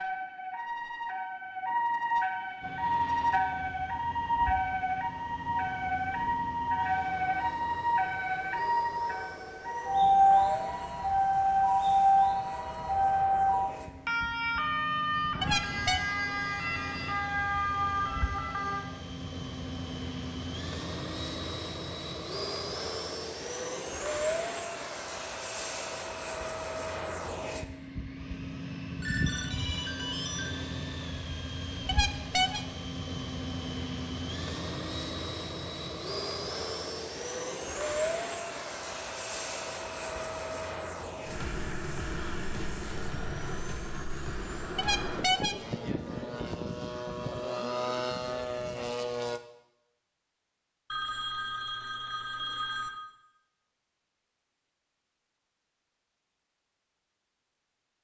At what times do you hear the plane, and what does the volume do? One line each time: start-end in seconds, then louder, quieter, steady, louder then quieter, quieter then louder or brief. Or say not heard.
2.6-49.4 louder.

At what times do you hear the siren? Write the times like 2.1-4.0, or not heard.
0.0-18.9.